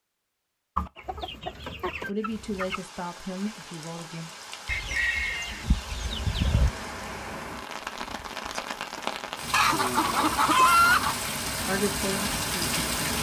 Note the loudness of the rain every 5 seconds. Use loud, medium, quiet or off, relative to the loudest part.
quiet, medium, loud.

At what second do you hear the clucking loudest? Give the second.
11 s.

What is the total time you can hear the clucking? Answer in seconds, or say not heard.
6 s.